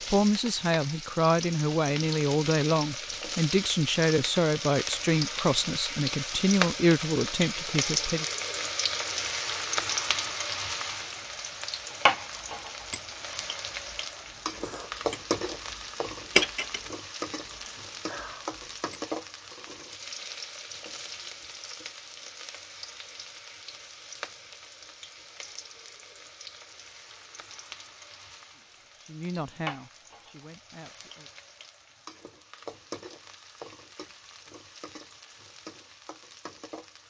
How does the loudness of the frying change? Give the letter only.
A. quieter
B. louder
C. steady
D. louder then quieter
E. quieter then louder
A.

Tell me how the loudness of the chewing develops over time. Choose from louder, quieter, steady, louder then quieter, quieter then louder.
louder then quieter.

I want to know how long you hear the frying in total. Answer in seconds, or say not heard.
37 s.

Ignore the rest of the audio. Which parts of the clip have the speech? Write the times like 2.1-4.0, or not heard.
0.1-8.2, 28.6-31.3.